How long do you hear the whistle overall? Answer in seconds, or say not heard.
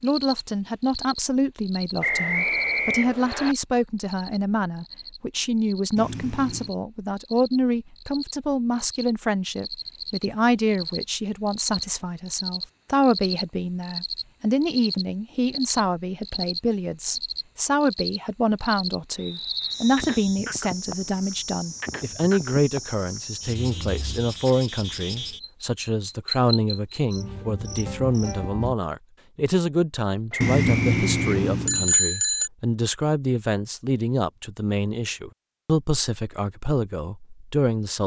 4 s.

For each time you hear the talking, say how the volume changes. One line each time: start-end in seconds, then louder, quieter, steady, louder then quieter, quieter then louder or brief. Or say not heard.
0.0-38.0 steady.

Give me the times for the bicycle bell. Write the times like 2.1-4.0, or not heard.
6.0-6.8, 30.4-32.5.